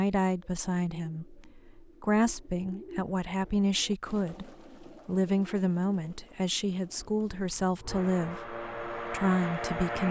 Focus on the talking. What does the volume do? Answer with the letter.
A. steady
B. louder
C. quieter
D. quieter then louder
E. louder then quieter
A.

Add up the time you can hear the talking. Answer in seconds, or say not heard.
10 s.